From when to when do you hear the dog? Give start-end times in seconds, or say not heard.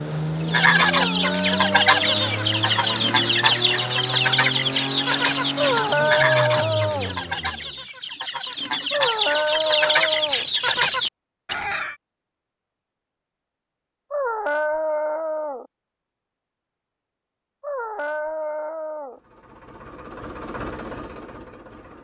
0.8-2.4, 5.5-7.2, 8.9-10.5, 14.1-15.7, 17.6-19.2.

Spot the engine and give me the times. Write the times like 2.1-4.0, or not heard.
0.0-7.8, 19.1-21.9.